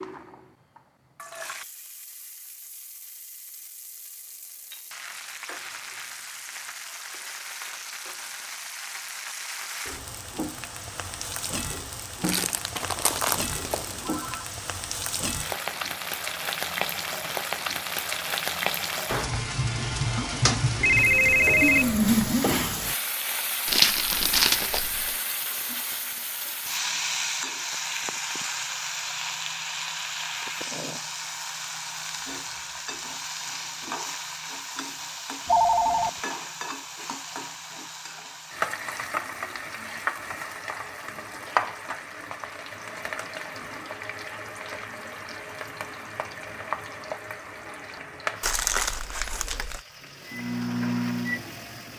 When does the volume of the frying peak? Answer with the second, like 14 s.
22 s.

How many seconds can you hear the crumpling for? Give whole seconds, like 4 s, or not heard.
5 s.